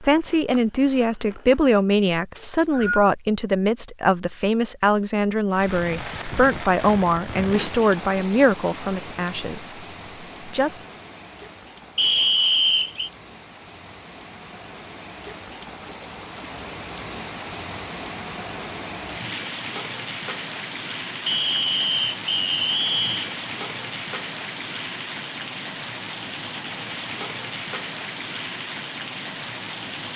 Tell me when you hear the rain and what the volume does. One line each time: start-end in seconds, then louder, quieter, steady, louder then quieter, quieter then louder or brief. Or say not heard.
5.5-30.1 quieter then louder.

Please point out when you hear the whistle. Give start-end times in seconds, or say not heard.
2.4-3.1, 11.9-13.1, 21.2-23.2.